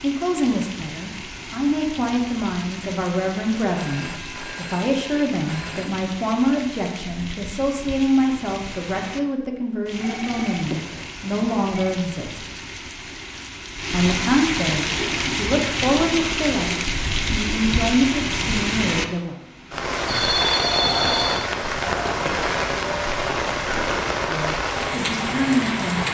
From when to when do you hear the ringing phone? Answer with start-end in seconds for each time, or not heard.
3.8-6.0, 10.0-12.0, 20.1-21.5.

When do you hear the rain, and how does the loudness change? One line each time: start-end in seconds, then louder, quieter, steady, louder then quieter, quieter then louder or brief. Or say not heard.
0.0-26.0 louder.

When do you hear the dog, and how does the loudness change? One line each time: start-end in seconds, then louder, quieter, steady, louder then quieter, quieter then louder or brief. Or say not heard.
not heard.